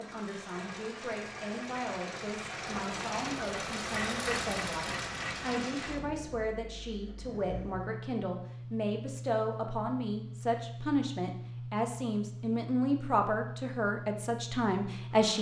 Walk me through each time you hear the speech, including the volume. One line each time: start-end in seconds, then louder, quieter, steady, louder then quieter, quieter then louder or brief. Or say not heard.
0.0-15.3 louder.